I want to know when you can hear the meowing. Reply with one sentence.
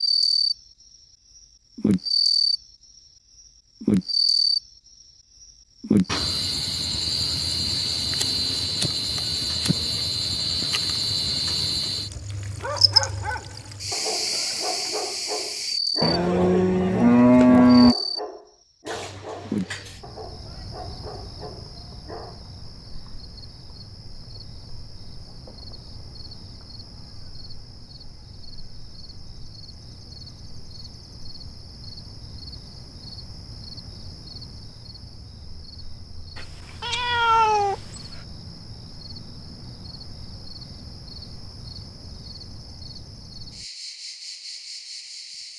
You can hear the meowing from 18.9 to 20.0 s and from 36.4 to 37.8 s.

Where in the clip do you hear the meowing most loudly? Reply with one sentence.
The volume of the meowing peaks at 37 seconds.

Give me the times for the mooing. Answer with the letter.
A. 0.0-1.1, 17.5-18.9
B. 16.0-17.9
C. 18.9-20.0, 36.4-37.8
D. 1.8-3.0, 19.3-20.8
B.